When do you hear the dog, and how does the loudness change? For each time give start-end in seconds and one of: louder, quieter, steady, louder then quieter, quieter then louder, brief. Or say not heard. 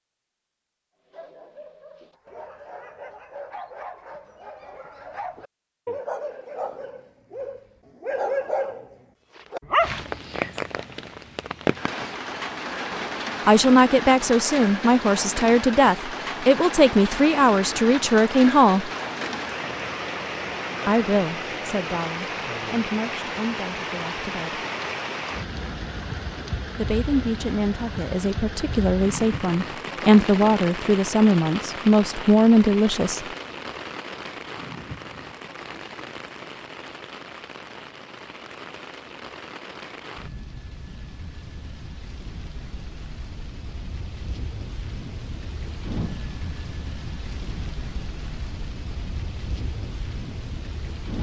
1.1-9.9 louder.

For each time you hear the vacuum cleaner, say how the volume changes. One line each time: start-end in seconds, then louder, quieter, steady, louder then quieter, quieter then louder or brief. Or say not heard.
not heard.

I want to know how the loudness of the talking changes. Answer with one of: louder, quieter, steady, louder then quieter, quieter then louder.
quieter then louder.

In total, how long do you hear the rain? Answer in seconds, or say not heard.
41 s.